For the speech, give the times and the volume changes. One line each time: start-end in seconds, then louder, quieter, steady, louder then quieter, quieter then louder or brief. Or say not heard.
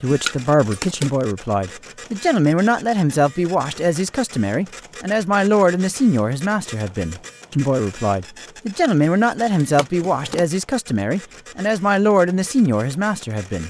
0.0-13.6 steady.